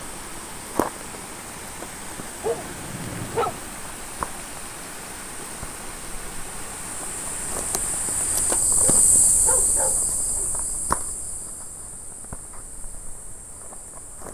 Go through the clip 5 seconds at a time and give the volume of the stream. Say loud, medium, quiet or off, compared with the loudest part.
loud, loud, quiet.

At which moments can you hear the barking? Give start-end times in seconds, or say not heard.
2.4-3.6, 8.8-10.5.